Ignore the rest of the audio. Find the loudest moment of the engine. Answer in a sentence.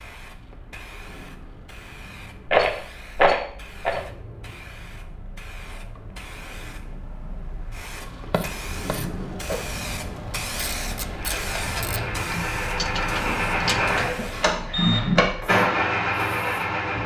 The volume of the engine peaks at 15 seconds.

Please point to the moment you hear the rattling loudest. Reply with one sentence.
The loudest moment of the rattling is at 3 seconds.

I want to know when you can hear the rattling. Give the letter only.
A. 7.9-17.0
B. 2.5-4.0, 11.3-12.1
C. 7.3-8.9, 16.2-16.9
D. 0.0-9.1
B.